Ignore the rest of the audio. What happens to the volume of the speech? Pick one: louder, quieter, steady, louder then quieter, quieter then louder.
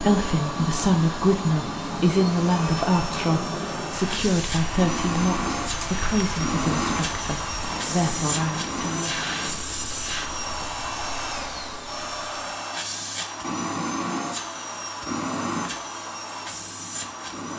quieter.